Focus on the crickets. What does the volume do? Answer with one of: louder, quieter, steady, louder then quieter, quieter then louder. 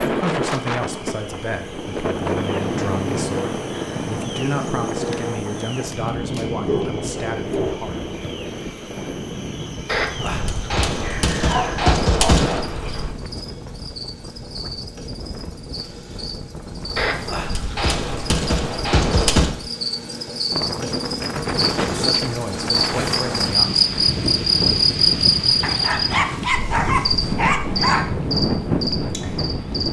louder.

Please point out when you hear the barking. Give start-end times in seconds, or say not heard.
6.6-7.8, 10.9-12.4, 25.6-28.1.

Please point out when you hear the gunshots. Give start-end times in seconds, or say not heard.
9.8-13.1, 16.9-19.6.